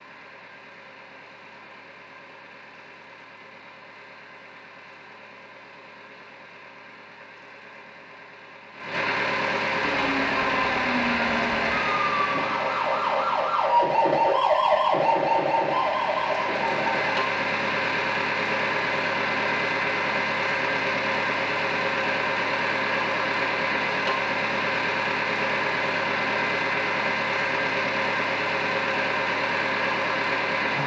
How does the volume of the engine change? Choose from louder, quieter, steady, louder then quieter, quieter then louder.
louder.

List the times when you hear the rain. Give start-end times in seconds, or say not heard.
not heard.